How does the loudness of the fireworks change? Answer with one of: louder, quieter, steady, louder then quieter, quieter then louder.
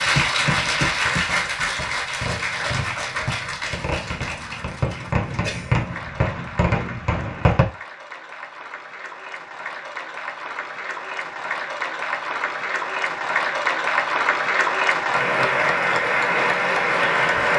louder.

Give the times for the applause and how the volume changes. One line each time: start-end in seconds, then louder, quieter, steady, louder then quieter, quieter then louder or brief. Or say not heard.
0.0-17.5 quieter then louder.